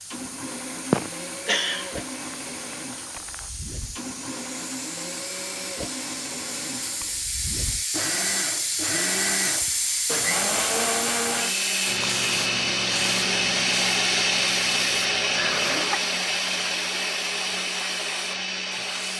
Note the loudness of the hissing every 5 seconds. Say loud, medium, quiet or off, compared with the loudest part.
medium, loud, loud, medium.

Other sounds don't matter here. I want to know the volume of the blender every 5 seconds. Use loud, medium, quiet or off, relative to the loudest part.
quiet, medium, loud, loud.